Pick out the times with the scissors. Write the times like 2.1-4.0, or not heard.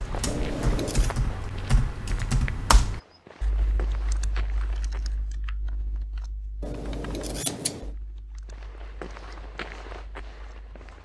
0.2-1.1, 6.6-7.9.